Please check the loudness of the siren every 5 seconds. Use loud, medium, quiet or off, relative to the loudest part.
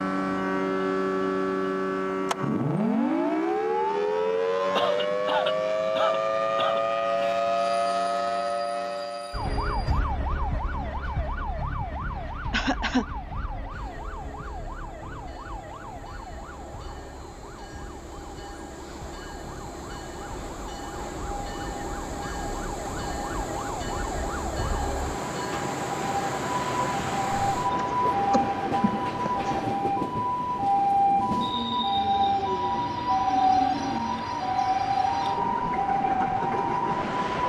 loud, loud, medium, quiet, quiet, loud, loud, loud.